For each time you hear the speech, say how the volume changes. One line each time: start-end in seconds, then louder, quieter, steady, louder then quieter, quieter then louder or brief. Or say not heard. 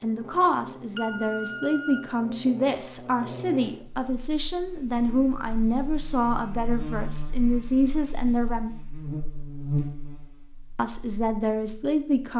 0.0-8.7 steady
10.8-12.3 brief.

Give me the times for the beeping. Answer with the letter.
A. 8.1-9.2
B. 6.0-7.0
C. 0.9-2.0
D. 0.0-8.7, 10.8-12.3
C.